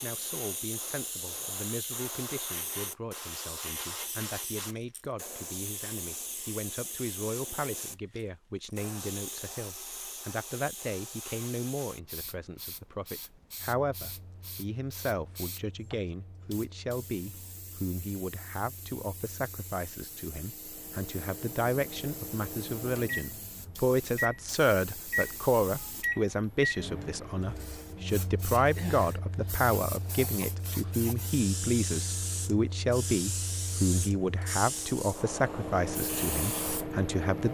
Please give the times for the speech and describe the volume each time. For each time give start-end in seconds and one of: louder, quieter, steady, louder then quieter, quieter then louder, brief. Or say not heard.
0.0-37.4 louder.